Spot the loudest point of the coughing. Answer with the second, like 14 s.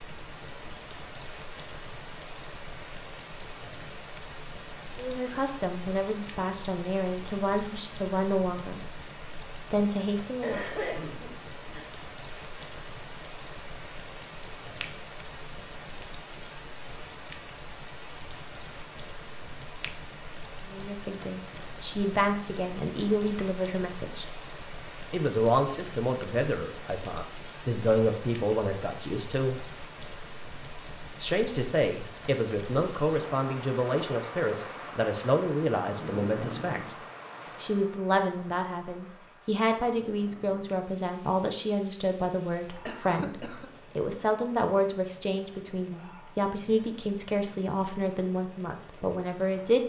11 s.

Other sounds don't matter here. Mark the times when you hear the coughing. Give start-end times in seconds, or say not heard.
10.4-11.9, 42.8-43.7.